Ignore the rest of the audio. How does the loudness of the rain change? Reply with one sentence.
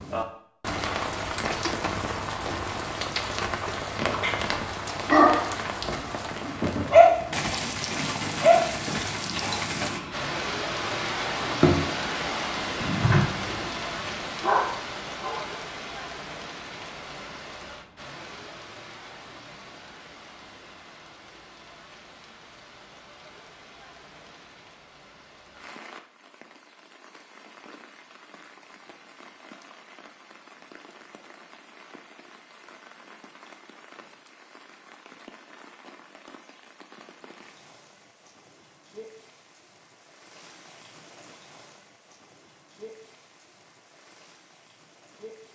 The volume of the rain goes down.